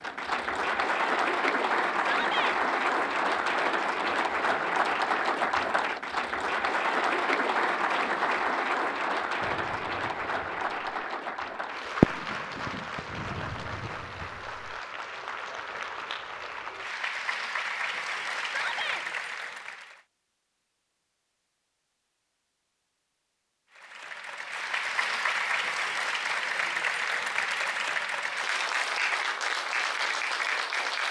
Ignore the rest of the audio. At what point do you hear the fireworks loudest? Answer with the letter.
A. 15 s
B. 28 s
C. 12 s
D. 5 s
C.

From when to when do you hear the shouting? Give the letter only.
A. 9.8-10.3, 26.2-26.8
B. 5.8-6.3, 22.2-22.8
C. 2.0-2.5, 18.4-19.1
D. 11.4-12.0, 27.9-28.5
C.